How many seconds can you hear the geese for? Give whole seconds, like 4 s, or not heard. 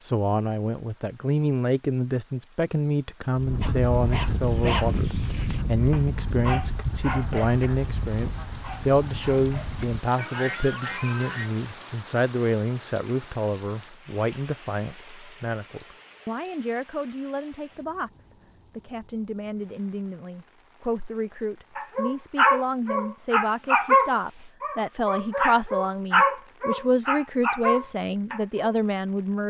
8 s.